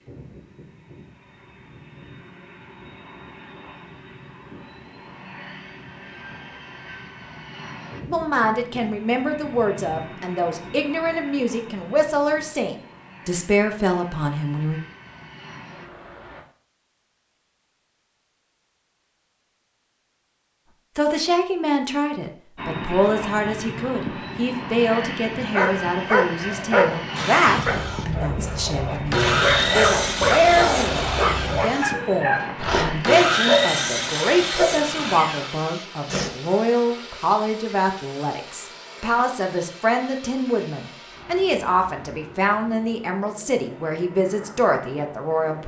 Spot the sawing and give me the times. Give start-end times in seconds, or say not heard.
27.1-36.3.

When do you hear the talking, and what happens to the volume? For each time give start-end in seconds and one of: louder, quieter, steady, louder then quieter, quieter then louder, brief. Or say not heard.
8.1-14.8 steady
20.9-45.6 steady.